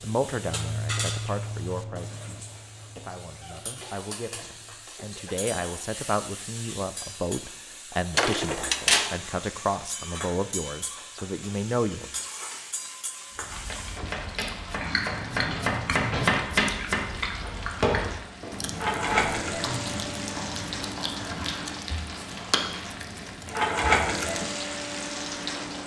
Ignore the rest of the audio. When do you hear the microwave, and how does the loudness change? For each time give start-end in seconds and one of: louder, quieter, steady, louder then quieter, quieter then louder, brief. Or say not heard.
not heard.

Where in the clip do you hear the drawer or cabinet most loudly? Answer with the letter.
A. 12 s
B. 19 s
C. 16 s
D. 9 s
D.